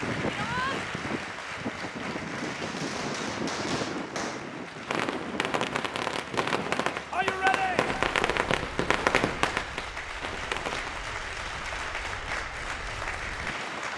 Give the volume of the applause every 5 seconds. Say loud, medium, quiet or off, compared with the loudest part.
loud, medium, loud.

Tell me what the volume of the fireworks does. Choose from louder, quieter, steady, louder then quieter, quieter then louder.
louder.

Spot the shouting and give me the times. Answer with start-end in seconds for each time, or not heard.
0.2-0.8, 7.1-8.0.